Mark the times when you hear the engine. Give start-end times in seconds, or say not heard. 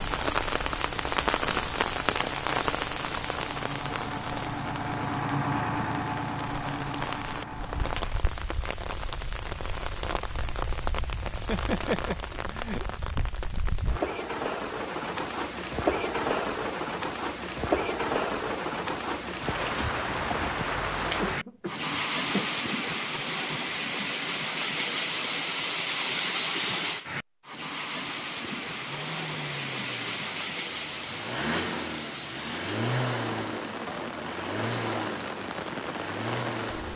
0.0-8.2, 28.4-36.9.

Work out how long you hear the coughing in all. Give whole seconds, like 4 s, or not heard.
3 s.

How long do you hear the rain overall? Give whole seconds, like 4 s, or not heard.
37 s.